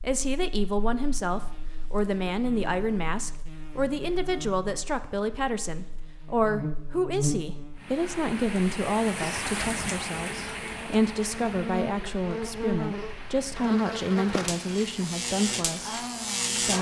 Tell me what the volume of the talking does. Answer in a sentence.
The loudness of the talking stays about the same.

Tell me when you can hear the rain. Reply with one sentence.
You can hear the rain from 7.8 to 16.7 s.